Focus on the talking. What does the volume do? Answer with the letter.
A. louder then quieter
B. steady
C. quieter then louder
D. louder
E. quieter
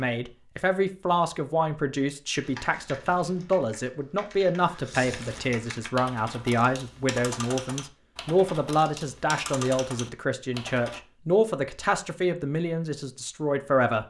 B.